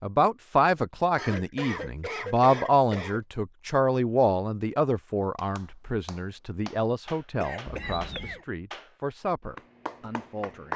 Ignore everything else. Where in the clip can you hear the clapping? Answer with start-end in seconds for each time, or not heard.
5.3-10.7.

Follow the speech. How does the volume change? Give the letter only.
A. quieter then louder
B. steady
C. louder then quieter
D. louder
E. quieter
E.